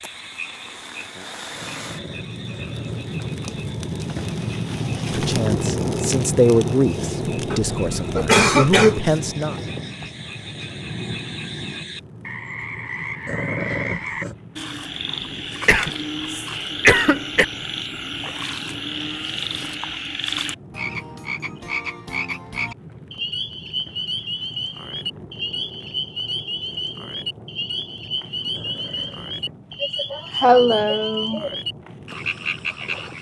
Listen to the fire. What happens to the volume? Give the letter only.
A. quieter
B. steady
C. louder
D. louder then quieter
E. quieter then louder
A.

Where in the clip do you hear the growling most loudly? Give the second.
14 s.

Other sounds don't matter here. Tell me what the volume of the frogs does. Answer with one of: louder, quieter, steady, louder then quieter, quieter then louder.
louder.